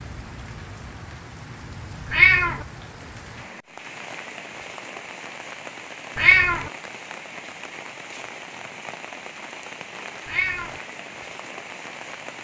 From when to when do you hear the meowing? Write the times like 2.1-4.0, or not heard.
2.1-2.6, 6.2-6.7, 10.2-10.8.